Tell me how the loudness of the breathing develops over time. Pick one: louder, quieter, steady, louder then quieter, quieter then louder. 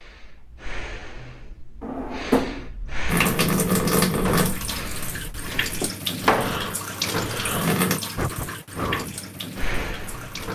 louder.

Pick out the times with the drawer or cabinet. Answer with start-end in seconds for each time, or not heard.
1.8-2.7, 5.8-7.3.